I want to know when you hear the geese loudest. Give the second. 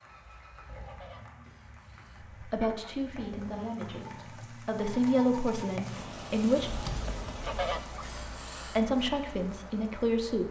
8 s.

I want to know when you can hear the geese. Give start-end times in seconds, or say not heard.
0.8-3.0, 7.4-8.8.